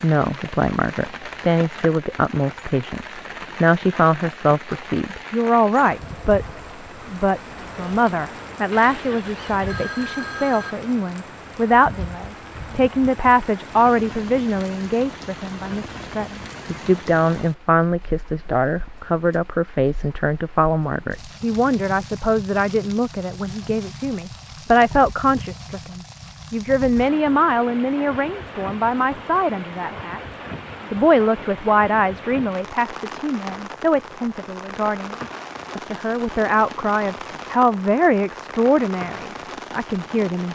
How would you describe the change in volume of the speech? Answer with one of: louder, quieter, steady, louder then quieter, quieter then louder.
steady.